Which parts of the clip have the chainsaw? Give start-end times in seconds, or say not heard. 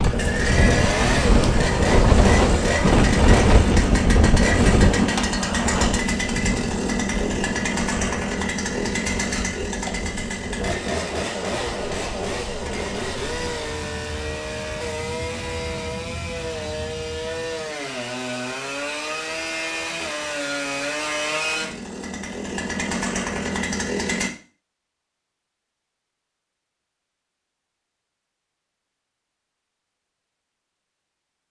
0.0-24.3.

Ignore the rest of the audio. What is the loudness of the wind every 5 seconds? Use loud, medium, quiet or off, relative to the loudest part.
loud, medium, quiet, quiet, off, off, off.